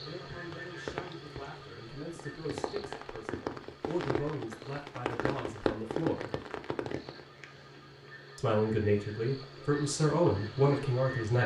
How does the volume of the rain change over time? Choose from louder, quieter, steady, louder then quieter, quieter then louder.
louder.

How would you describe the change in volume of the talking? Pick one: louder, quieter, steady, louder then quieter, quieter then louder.
louder.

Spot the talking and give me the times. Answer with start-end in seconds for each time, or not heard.
0.0-6.3, 8.3-11.4.